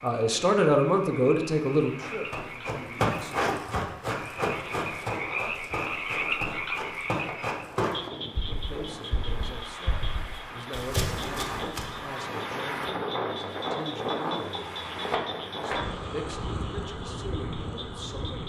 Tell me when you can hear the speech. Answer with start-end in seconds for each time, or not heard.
0.0-3.5, 8.6-18.4.